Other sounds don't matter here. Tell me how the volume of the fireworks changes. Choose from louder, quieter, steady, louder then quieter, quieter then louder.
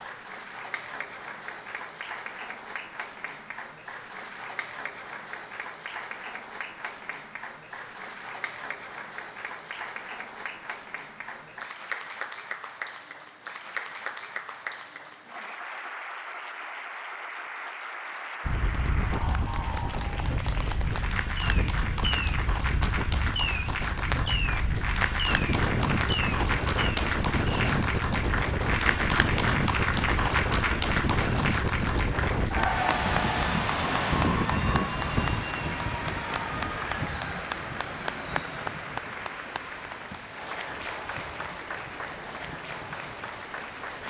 steady.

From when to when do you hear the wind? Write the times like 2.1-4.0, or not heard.
18.4-44.0.